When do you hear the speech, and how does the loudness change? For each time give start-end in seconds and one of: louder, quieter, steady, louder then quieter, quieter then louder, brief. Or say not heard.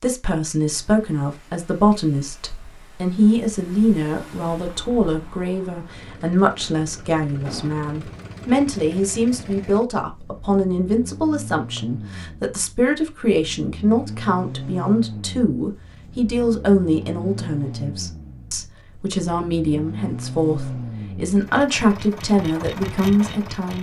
0.0-23.7 steady.